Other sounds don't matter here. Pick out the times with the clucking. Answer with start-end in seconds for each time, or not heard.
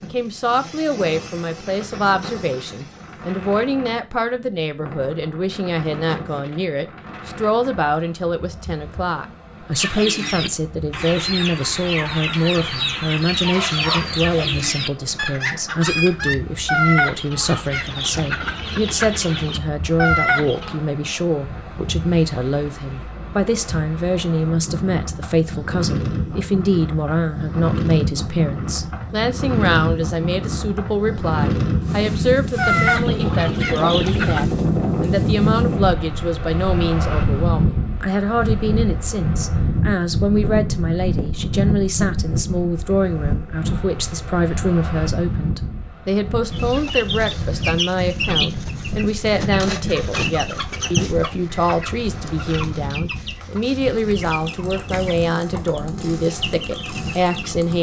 9.7-20.8, 32.5-34.5, 46.5-57.5.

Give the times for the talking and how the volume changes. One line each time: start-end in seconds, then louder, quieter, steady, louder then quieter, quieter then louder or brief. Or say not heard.
0.0-57.7 steady.